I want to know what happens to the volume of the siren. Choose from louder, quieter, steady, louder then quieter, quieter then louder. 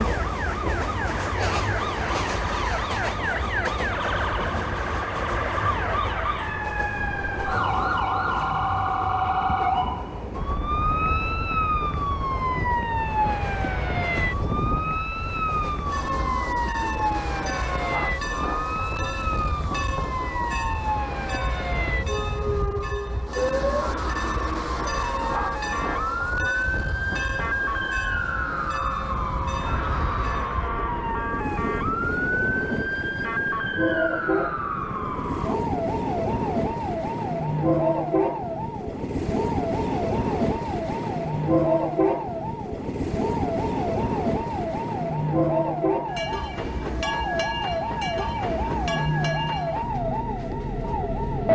steady.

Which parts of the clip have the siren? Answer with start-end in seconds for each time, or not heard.
0.0-51.5.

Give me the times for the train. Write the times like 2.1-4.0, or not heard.
0.0-51.5.